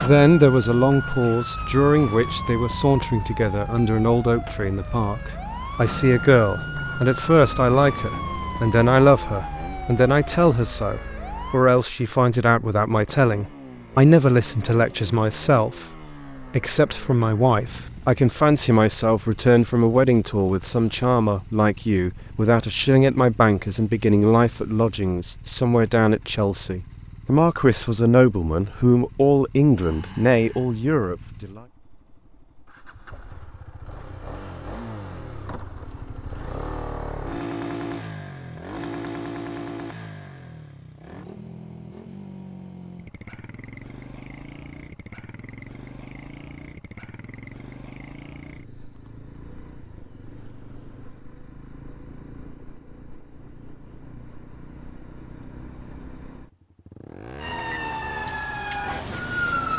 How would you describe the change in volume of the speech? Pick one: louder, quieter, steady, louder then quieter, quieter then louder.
steady.